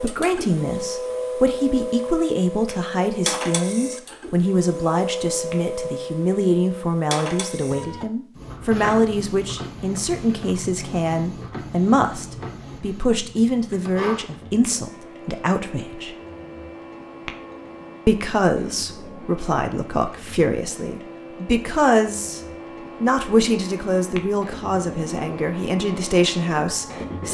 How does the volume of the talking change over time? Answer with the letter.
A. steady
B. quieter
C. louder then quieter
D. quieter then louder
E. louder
A.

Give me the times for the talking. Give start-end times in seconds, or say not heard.
0.0-16.1, 18.1-22.4, 23.0-27.2.